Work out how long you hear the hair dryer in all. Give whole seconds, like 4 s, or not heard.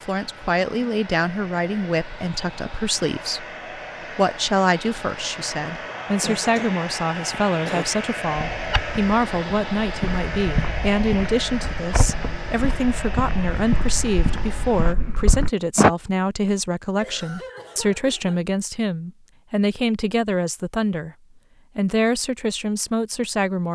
15 s.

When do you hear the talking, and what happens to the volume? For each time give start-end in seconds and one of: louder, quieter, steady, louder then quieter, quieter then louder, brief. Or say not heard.
0.0-21.1 steady
21.8-23.6 brief.